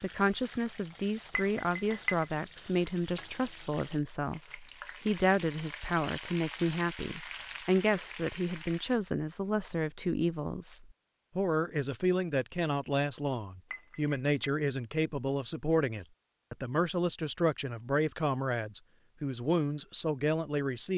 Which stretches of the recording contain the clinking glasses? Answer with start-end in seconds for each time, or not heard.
1.4-2.2, 13.7-14.5.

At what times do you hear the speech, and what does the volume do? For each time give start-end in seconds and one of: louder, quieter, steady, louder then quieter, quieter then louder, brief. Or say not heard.
0.0-20.9 steady.